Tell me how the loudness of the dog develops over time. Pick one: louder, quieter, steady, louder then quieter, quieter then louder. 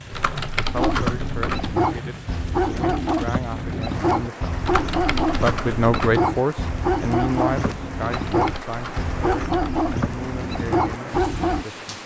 steady.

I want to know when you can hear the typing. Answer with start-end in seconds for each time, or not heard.
0.1-1.8, 4.6-6.2, 8.1-9.8.